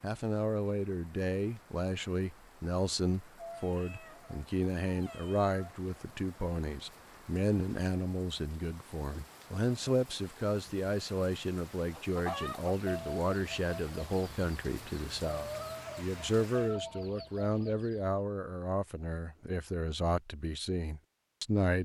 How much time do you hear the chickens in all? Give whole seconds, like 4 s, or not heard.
6 s.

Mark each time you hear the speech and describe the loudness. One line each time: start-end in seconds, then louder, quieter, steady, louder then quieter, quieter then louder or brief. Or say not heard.
0.0-21.8 steady.